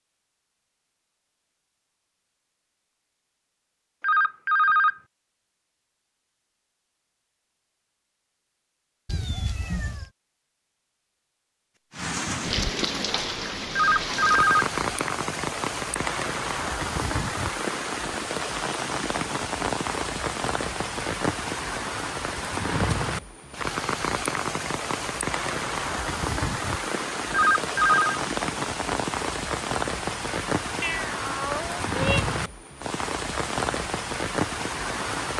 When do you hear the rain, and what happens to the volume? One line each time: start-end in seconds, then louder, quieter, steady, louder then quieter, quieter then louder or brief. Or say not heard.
11.9-35.3 steady.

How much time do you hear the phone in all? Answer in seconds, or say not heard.
3 s.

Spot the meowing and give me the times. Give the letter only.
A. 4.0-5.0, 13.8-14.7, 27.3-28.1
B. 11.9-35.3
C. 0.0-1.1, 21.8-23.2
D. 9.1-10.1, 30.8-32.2
D.